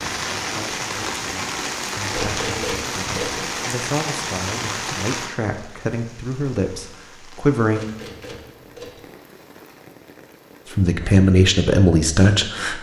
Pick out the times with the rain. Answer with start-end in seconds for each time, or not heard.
0.0-10.8.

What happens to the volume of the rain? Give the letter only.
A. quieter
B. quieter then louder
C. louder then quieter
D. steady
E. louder
A.